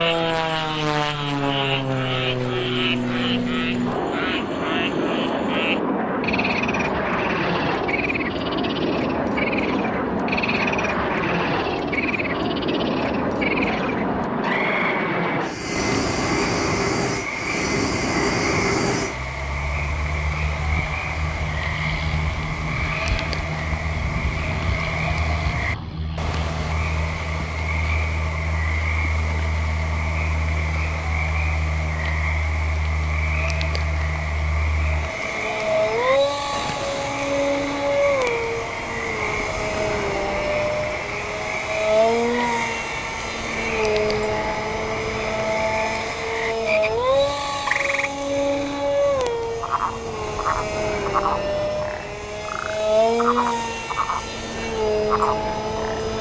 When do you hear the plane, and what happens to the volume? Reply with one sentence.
You can hear the plane from 0.0 to 56.1 s, getting quieter then louder.